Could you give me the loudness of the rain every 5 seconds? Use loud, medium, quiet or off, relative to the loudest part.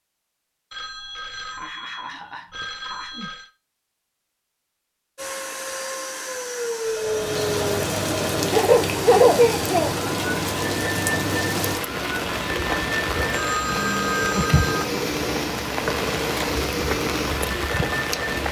off, loud, loud, loud.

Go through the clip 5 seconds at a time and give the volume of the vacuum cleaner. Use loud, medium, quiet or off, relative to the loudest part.
off, loud, loud, loud.